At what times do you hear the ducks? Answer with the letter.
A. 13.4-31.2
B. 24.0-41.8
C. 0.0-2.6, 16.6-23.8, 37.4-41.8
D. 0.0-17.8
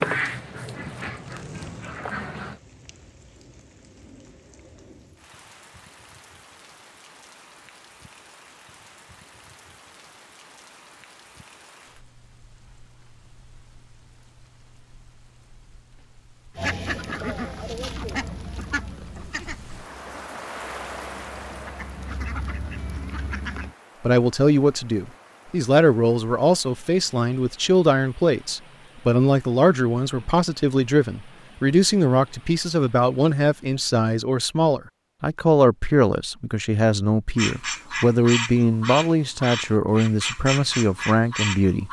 C.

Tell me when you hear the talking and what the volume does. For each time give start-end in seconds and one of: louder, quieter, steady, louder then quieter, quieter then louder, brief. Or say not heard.
24.0-41.8 steady.